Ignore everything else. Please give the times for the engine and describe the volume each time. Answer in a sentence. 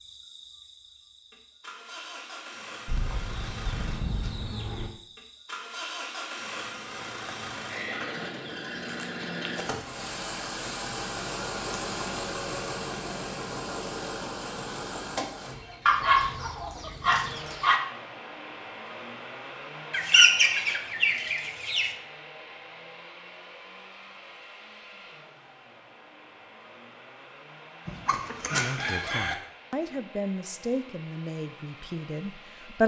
The engine can be heard from 0.0 to 32.8 s, getting louder then quieter.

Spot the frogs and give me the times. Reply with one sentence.
The frogs can't be heard in this clip.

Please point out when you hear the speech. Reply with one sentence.
The speech can be heard from 28.5 to 32.8 s.